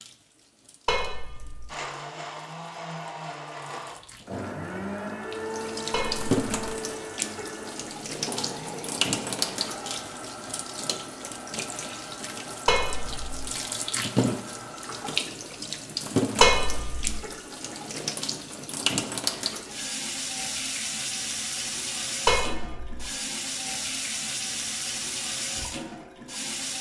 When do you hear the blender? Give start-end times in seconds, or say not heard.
1.6-15.2.